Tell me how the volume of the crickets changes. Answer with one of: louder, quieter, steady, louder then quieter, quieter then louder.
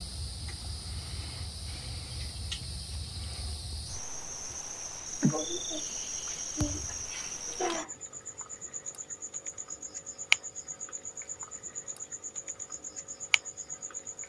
louder then quieter.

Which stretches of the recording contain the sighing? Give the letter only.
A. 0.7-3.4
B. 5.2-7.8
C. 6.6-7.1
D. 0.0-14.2
B.